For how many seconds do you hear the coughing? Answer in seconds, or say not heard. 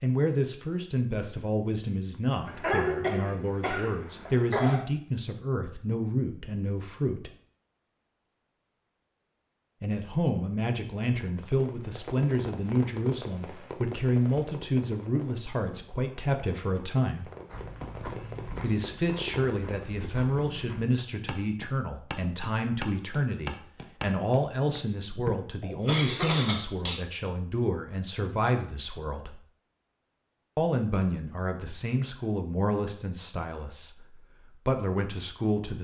4 s.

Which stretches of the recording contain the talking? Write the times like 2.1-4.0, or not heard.
0.0-7.3, 9.8-17.3, 18.6-29.4, 30.6-35.7.